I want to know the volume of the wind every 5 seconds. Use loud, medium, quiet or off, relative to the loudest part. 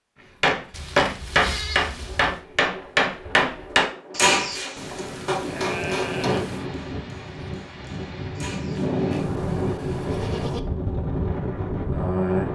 quiet, loud, loud.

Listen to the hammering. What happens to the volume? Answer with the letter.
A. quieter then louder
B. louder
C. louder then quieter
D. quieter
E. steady
D.